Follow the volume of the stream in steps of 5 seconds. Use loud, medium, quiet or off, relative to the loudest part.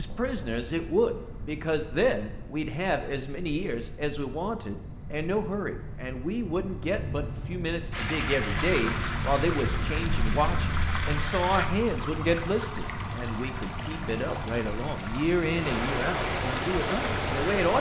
off, loud, medium, loud.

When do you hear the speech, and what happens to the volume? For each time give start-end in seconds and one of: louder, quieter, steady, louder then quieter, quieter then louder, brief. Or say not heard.
0.0-17.7 steady.